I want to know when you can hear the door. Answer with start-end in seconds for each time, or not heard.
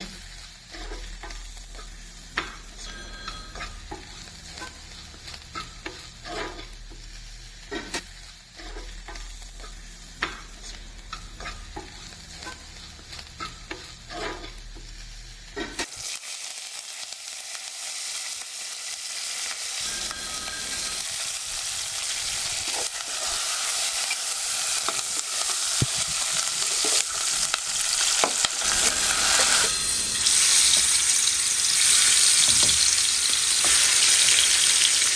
not heard.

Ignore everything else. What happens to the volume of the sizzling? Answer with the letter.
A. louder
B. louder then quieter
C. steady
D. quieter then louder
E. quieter
A.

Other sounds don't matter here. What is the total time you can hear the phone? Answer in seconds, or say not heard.
4 s.